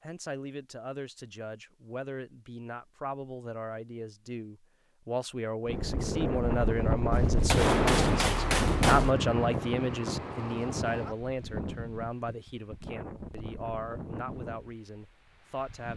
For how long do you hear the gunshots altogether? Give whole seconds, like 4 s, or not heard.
2 s.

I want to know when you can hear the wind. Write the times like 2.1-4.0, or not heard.
5.7-15.9.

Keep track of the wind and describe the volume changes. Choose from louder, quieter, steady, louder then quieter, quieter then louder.
quieter.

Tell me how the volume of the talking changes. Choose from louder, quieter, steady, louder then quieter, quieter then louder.
louder then quieter.